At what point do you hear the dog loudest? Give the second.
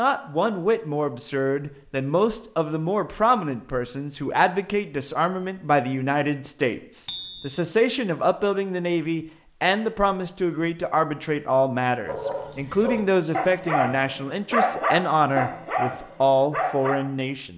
15 s.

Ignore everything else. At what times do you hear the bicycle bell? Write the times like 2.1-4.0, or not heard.
7.0-7.6.